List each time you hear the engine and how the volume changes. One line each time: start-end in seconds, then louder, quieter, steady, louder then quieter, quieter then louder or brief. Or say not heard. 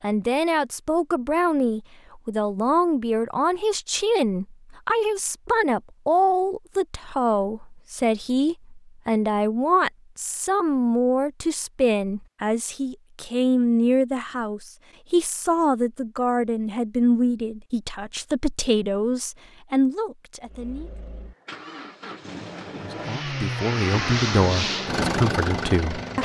20.4-26.2 louder.